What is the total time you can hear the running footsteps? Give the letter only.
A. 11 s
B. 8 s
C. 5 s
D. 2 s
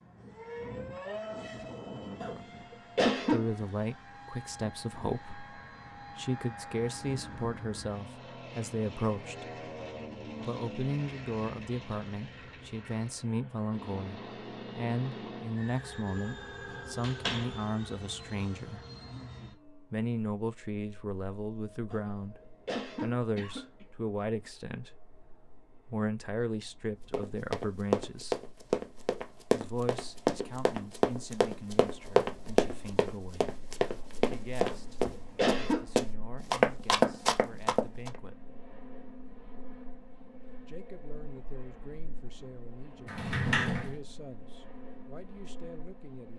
A.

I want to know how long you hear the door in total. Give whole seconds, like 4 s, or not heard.
2 s.